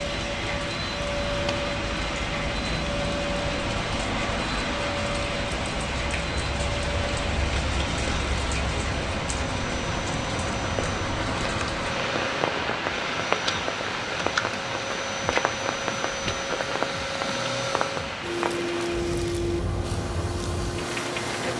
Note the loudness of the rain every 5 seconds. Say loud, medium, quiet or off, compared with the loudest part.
loud, loud, loud, loud, medium.